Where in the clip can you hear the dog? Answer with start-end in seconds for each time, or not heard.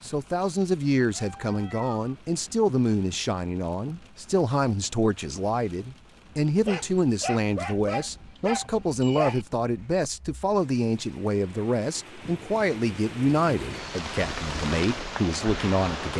6.5-10.6.